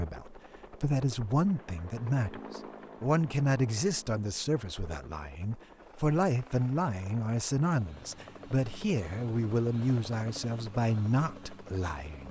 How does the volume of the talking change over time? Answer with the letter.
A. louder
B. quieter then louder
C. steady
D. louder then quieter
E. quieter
C.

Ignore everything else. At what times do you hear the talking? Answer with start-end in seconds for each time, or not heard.
0.0-12.2.